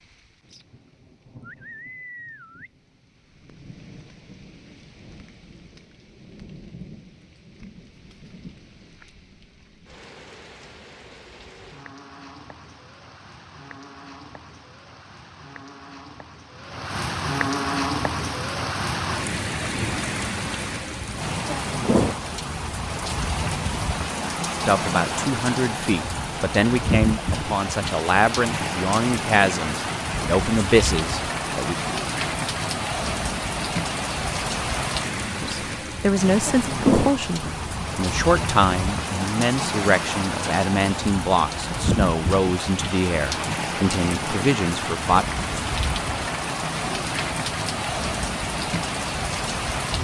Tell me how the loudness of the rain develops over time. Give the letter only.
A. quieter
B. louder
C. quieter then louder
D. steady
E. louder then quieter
B.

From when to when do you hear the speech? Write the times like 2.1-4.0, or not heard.
24.6-31.8, 35.4-45.2.